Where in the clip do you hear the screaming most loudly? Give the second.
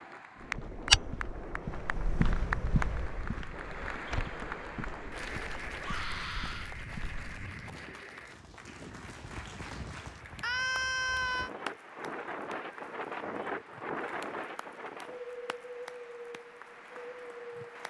11 s.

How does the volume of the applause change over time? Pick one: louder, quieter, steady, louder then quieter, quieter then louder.
quieter.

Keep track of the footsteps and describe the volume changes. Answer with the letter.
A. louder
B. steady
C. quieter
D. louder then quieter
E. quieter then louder
C.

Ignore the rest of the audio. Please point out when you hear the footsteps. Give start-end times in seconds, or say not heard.
0.4-7.5.